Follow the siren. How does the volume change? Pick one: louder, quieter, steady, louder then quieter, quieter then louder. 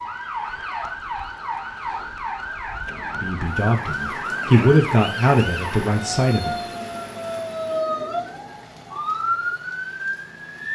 steady.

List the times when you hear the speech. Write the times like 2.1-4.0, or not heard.
3.2-6.5.